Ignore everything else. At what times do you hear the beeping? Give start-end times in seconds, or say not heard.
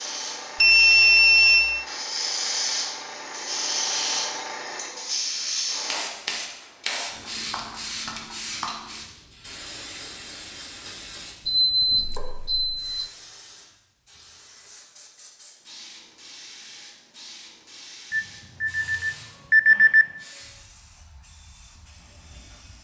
0.6-1.9, 11.4-13.1, 18.1-20.1.